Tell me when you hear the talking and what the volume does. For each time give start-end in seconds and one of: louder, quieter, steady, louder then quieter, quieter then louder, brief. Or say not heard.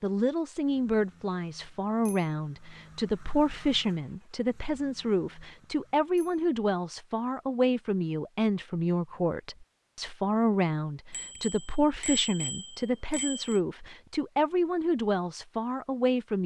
0.0-16.4 steady.